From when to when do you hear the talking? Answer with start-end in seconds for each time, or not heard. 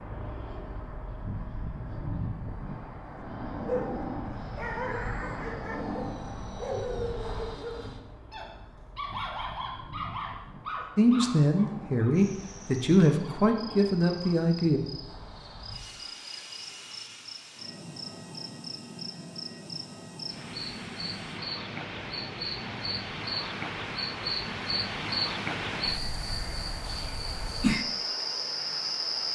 10.9-14.8.